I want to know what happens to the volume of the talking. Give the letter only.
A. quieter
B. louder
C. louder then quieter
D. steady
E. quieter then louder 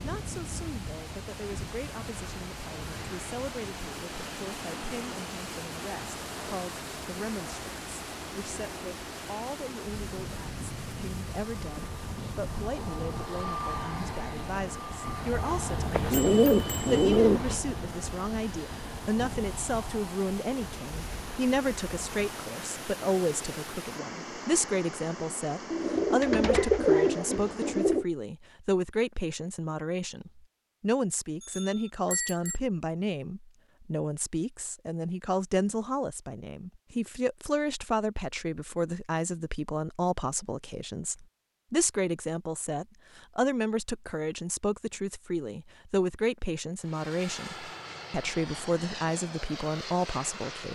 B.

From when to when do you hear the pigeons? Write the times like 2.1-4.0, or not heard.
15.9-17.6, 25.7-28.1.